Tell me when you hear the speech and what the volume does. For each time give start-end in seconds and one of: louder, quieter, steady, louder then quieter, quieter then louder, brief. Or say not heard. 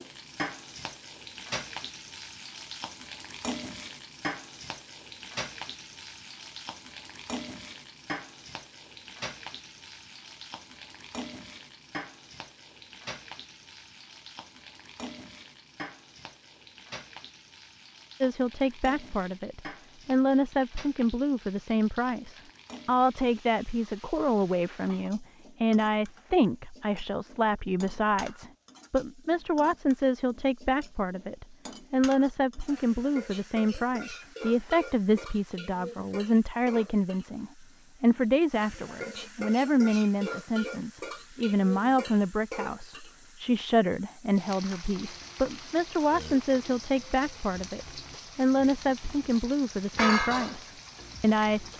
18.2-51.7 steady.